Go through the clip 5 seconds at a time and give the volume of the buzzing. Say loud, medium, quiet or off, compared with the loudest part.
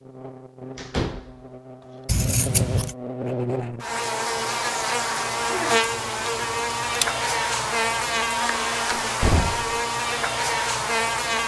medium, loud, loud.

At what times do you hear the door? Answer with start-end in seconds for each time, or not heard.
0.8-1.4, 8.9-9.7.